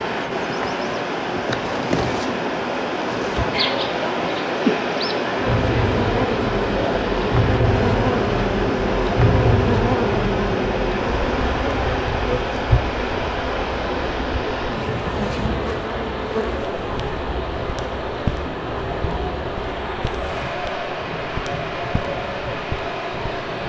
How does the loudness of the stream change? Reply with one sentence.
The loudness of the stream stays about the same.